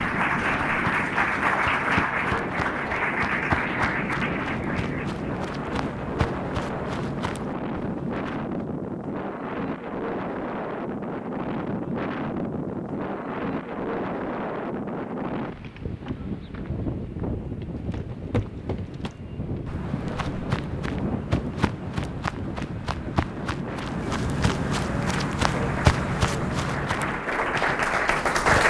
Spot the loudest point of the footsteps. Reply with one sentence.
The loudest moment of the footsteps is at 26 seconds.